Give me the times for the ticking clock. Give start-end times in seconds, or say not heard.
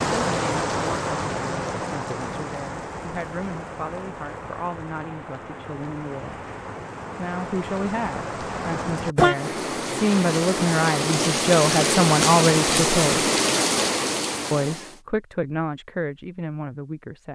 not heard.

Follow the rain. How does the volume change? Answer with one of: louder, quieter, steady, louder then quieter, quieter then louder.
quieter then louder.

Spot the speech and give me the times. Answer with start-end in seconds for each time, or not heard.
0.2-6.5, 7.2-13.3, 14.5-17.3.